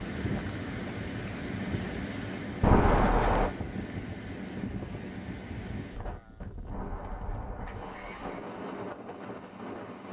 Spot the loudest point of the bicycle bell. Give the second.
3 s.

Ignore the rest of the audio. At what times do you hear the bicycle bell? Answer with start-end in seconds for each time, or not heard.
2.6-3.5, 6.7-8.4.